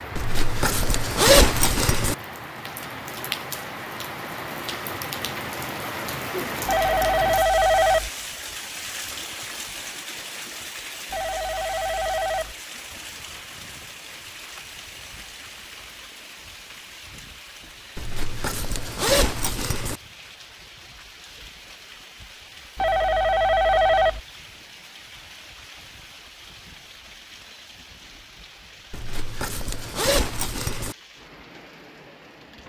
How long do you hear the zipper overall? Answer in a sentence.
The zipper can be heard for 6 seconds in total.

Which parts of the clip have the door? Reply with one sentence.
You can't hear the door here.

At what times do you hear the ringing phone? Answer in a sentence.
The ringing phone can be heard from 6.7 to 8.1 s, from 11.1 to 12.6 s and from 22.8 to 24.2 s.